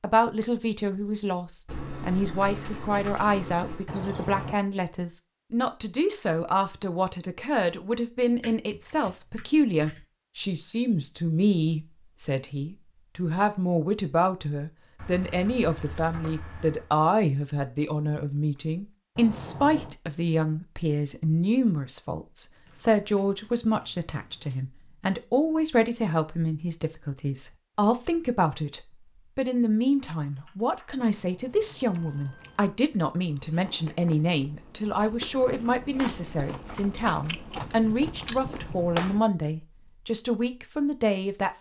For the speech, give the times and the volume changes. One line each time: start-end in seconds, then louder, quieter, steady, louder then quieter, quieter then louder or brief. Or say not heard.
0.0-41.5 steady.